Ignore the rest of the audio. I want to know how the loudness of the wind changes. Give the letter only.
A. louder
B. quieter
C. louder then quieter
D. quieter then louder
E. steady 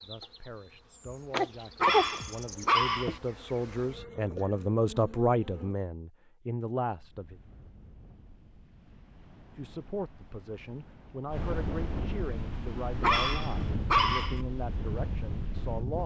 A.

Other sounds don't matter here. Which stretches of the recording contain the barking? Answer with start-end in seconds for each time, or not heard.
1.8-3.2, 13.0-14.4.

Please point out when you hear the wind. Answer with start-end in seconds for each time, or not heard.
6.8-16.0.